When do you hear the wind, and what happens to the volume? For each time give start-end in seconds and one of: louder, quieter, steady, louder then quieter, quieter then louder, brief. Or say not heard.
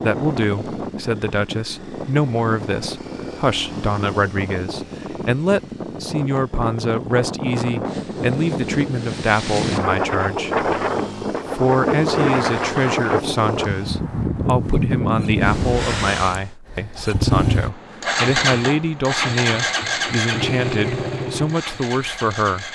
0.0-16.5 louder.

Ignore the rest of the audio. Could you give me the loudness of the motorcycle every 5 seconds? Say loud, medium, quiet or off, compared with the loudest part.
quiet, quiet, medium, loud, loud.